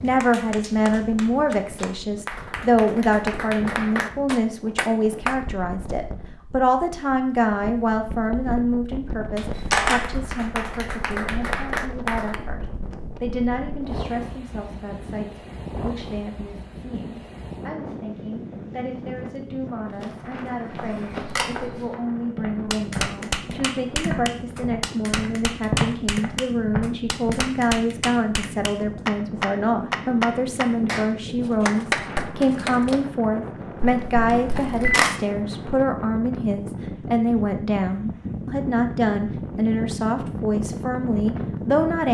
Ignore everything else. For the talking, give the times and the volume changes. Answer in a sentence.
The talking can be heard from 0.0 to 42.0 s, getting quieter then louder.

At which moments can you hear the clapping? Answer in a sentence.
You can hear the clapping from 0.0 to 5.3 s, from 9.3 to 12.4 s and from 22.6 to 33.0 s.